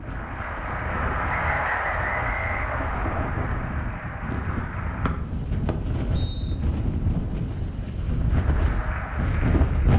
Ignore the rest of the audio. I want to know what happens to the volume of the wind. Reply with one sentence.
The loudness of the wind goes up.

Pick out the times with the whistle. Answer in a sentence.
The whistle can be heard from 1.2 to 3.3 s and from 5.0 to 6.5 s.